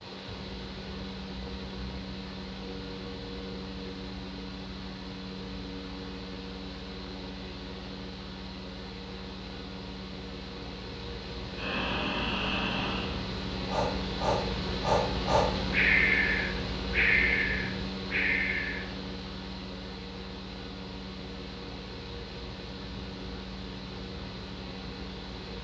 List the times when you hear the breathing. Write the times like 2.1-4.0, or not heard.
11.6-18.9.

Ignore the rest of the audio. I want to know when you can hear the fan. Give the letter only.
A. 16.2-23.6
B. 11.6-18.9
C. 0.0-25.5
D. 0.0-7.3
C.